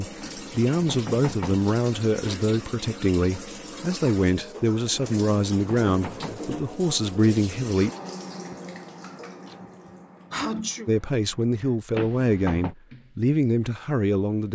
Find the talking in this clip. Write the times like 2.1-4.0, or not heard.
0.0-7.9, 10.8-14.5.